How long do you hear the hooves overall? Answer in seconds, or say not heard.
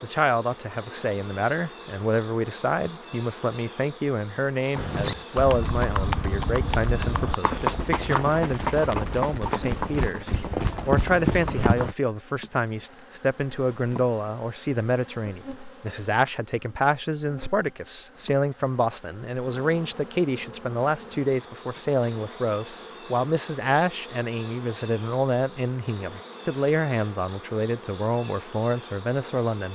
7 s.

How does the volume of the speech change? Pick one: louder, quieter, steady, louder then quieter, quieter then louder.
steady.